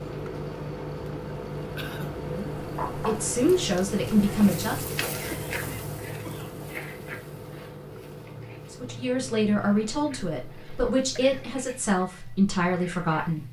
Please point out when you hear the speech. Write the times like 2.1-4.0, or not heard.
2.2-5.0, 8.7-13.4.